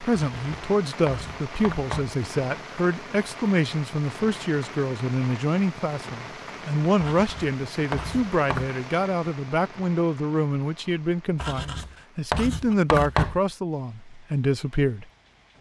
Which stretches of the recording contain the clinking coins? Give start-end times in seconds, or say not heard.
not heard.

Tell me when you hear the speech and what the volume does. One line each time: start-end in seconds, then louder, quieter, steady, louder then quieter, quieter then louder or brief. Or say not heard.
0.0-15.1 steady.